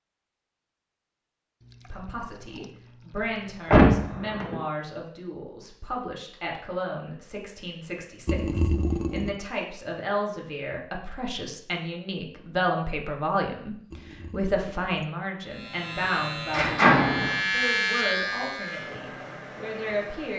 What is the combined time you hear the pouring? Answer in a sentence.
The pouring can be heard for 4 seconds in total.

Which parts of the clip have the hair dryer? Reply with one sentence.
The hair dryer can be heard from 18.6 to 20.3 s.